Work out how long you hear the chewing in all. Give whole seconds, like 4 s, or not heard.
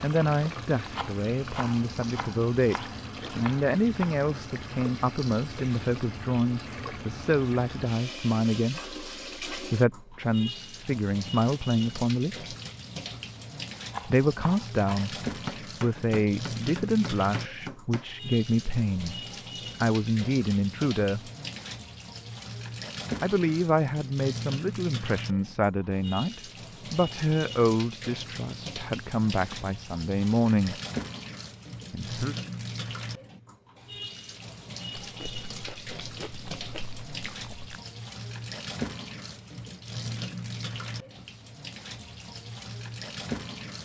3 s.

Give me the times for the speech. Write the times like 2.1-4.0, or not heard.
0.0-12.4, 14.1-19.2, 19.8-21.3, 23.2-30.8, 31.9-32.4.